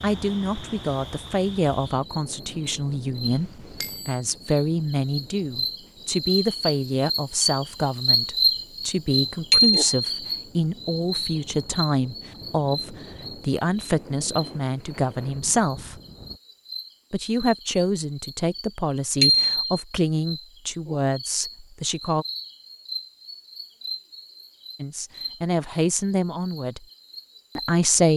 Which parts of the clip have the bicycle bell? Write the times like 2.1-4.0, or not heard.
3.8-4.2, 9.5-9.9, 19.2-19.9.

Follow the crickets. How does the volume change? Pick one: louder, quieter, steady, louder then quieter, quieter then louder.
louder then quieter.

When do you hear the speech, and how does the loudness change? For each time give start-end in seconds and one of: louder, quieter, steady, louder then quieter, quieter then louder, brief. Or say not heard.
0.0-15.9 steady
17.1-22.2 steady
24.8-26.9 brief
27.6-28.1 brief.